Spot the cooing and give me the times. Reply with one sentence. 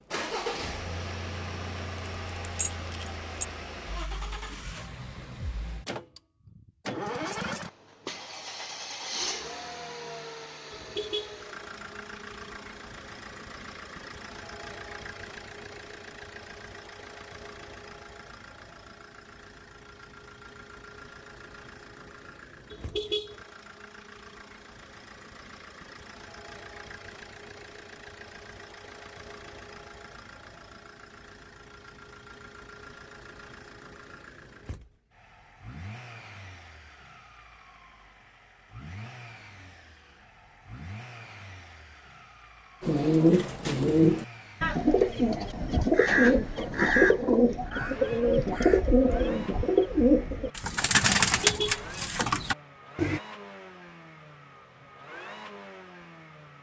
You can hear the cooing from 42.8 to 53.2 s.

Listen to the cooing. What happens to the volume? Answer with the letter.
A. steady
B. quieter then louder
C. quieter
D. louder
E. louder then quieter
A.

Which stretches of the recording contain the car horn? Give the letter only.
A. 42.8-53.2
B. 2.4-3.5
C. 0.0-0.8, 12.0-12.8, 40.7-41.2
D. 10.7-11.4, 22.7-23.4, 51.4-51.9
D.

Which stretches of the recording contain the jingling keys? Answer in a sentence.
The jingling keys can be heard from 2.4 to 3.5 s.